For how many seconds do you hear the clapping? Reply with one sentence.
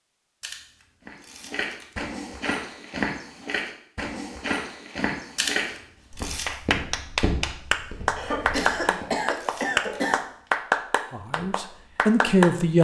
You can hear the clapping for 6 seconds altogether.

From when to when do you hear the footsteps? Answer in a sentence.
You can hear the footsteps from 1.1 to 9.1 s.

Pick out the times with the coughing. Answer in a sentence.
The coughing can be heard from 8.2 to 10.2 s.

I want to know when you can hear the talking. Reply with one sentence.
You can hear the talking from 11.1 to 12.7 s.